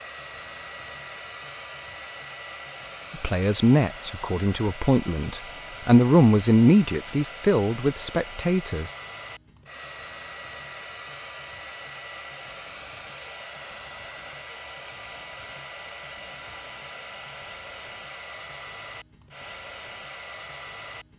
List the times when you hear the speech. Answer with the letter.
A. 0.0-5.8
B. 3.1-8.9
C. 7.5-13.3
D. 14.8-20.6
B.